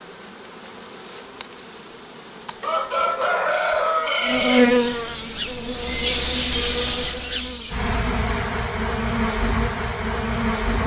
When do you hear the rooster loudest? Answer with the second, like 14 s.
4 s.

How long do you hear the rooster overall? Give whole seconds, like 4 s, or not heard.
2 s.